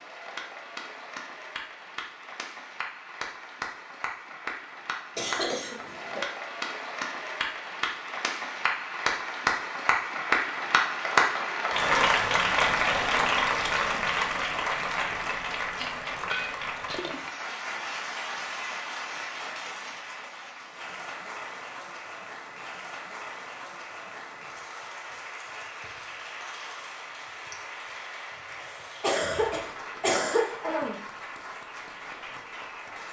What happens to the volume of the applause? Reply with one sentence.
The volume of the applause goes up, then down.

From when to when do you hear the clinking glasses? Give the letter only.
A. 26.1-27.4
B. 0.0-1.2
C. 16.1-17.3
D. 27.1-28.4
C.